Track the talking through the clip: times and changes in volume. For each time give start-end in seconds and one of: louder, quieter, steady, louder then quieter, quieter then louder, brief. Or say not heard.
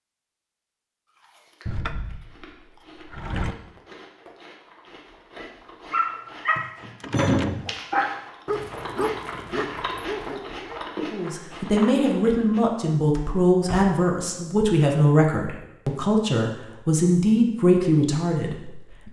11.1-19.0 steady.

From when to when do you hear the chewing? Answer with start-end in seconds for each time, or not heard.
1.1-12.6.